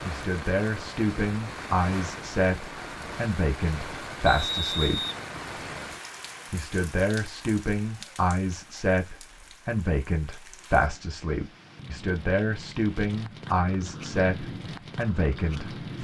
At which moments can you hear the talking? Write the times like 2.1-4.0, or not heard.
0.1-5.0, 6.5-15.9.